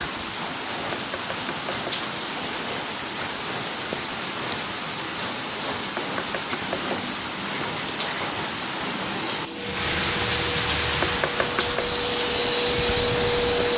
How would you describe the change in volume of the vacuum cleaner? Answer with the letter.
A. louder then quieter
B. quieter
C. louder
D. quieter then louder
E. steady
C.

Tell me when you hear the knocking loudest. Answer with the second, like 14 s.
11 s.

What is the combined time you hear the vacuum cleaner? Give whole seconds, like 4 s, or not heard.
4 s.